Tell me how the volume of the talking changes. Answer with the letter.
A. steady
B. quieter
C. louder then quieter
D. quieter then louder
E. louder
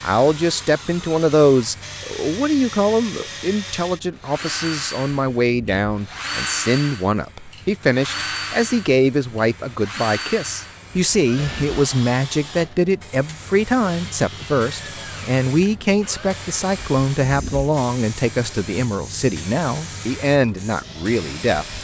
A.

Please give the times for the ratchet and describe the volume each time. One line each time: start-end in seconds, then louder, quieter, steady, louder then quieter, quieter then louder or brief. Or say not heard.
not heard.